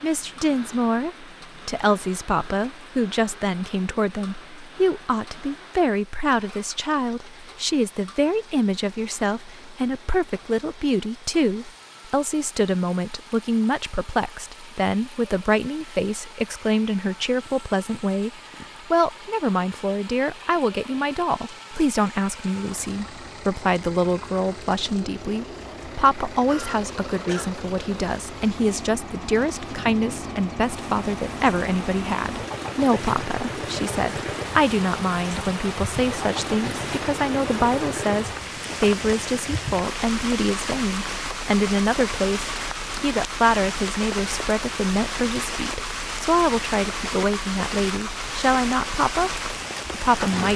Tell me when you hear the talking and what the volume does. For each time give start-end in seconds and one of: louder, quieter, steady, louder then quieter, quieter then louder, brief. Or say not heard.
0.0-49.3 steady
49.9-50.5 brief.